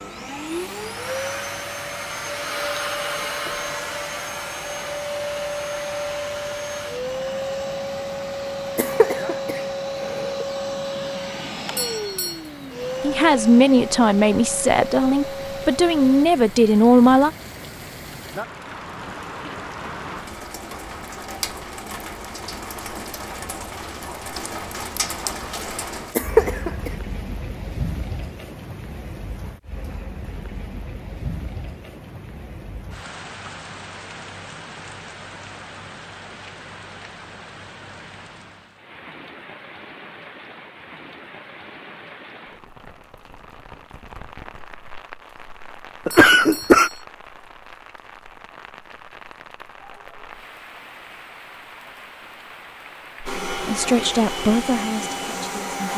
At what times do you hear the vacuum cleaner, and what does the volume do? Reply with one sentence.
The vacuum cleaner can be heard from 0.0 to 16.2 s, at a steady volume; and briefly from 53.2 to 55.9 s.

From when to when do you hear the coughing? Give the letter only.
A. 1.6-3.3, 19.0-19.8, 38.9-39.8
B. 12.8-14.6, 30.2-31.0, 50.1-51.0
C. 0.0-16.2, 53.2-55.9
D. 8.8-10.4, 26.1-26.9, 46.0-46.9
D.